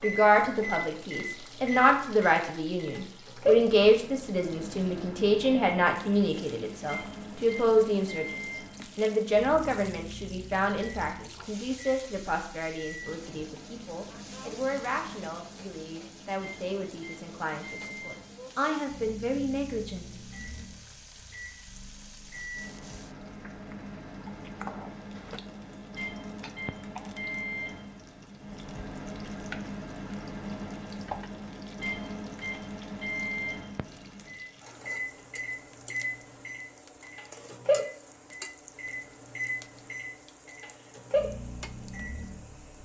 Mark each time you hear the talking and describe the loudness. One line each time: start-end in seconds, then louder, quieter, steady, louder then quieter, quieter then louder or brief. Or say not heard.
0.0-20.2 quieter.